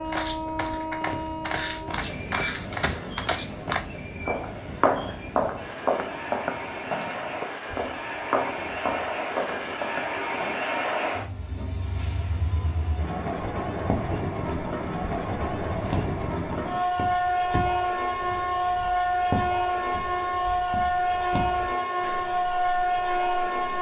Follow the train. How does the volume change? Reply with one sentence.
The loudness of the train goes up.